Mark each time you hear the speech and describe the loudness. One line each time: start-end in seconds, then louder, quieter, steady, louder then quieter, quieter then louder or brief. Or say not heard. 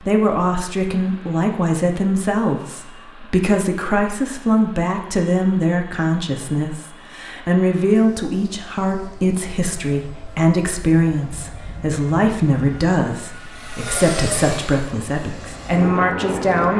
0.0-16.7 steady.